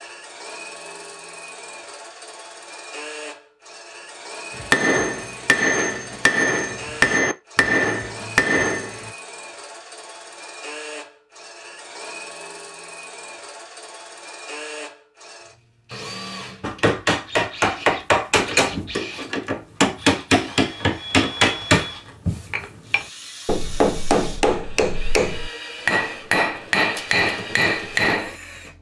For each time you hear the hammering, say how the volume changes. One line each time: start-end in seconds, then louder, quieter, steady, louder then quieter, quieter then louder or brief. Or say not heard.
4.5-9.1 steady
16.6-28.4 steady.